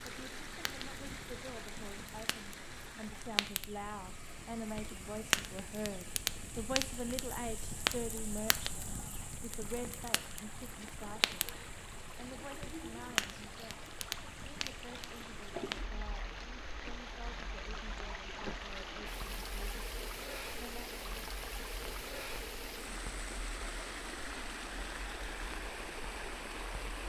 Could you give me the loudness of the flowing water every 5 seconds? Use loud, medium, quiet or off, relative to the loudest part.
medium, medium, medium, loud, loud, loud.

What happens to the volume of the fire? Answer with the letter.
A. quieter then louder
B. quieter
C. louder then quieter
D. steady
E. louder
B.